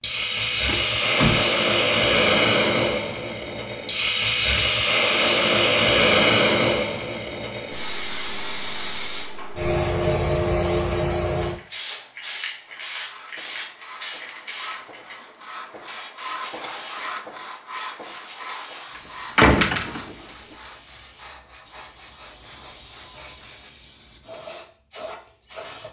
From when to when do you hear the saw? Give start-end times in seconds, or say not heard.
12.7-23.7.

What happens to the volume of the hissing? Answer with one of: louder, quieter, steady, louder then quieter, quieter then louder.
quieter.